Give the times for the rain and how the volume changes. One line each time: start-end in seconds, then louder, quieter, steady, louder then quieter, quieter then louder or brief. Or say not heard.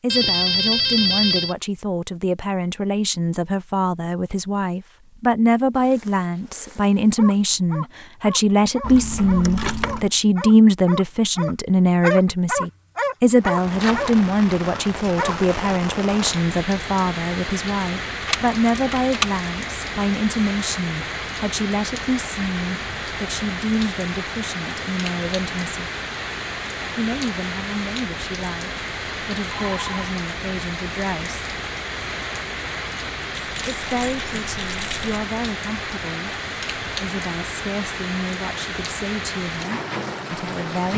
13.3-40.9 steady.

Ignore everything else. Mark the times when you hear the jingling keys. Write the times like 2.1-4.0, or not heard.
8.8-10.1, 18.2-19.4, 33.4-35.2.